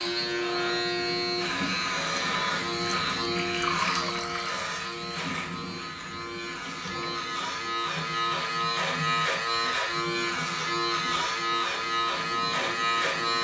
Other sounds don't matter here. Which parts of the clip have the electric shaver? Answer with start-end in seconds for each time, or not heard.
0.0-13.3.